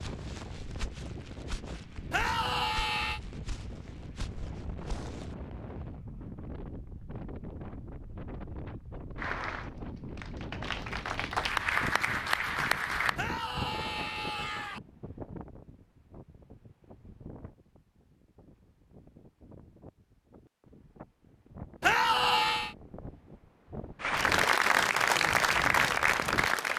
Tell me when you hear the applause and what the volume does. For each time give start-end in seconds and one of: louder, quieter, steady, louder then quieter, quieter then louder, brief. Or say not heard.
9.2-13.2 louder
24.0-26.7 brief.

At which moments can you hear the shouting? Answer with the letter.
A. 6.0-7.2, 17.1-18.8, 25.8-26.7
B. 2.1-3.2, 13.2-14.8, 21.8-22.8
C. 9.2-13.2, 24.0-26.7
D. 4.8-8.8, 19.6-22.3
B.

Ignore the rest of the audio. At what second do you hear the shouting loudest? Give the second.
22 s.